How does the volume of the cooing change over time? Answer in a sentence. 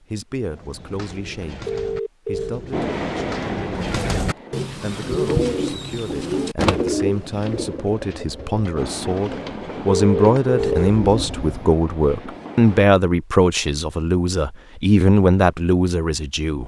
The loudness of the cooing goes up, then down.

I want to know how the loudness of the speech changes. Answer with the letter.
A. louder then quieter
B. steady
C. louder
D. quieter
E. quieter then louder
C.